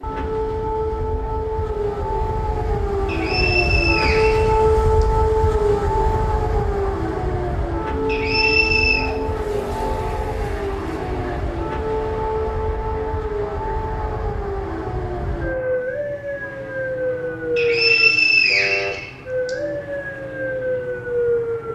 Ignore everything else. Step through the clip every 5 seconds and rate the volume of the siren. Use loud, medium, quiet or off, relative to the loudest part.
loud, loud, medium, loud, loud.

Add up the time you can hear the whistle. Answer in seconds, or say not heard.
5 s.